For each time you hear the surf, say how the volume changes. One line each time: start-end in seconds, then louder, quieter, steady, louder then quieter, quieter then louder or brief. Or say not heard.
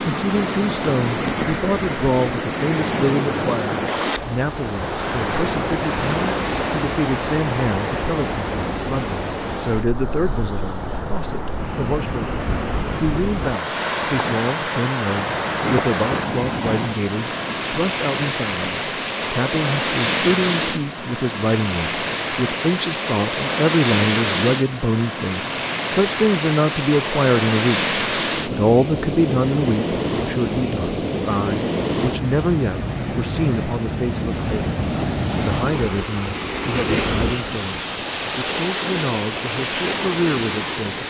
0.0-41.0 steady.